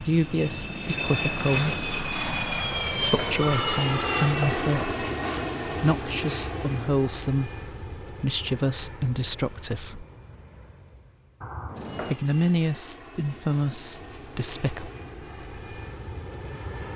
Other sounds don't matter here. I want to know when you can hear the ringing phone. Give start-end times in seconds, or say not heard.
2.6-4.7, 11.4-12.2.